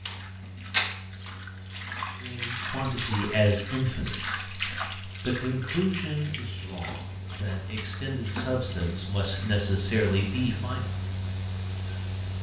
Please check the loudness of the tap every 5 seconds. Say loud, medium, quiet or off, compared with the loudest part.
loud, medium, quiet.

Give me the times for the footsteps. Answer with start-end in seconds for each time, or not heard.
not heard.